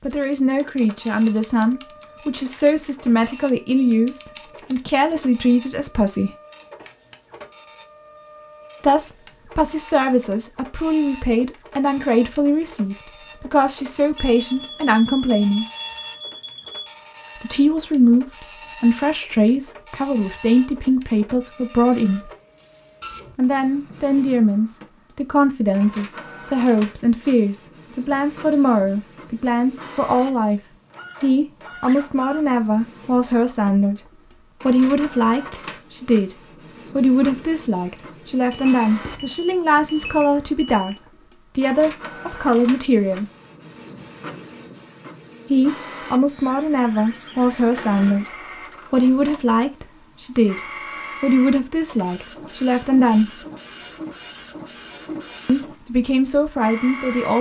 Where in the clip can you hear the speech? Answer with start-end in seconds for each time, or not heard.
0.0-6.3, 8.8-15.7, 17.4-22.3, 23.4-43.3, 45.5-53.4, 55.5-57.3.